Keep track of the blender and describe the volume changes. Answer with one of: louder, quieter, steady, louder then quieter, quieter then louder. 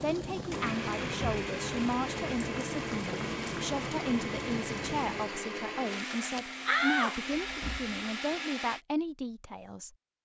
steady.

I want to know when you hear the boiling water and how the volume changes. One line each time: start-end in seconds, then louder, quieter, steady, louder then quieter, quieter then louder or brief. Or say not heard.
0.0-5.4 steady.